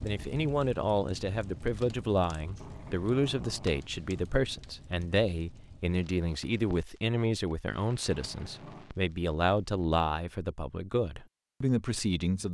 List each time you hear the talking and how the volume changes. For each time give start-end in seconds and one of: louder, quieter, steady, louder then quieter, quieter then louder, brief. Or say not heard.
0.0-12.5 steady.